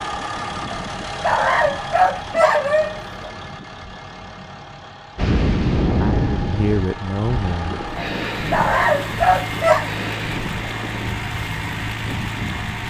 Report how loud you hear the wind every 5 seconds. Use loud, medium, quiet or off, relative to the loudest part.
off, loud, medium.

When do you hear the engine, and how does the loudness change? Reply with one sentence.
You can hear the engine from 0.0 to 12.8 s, getting quieter then louder.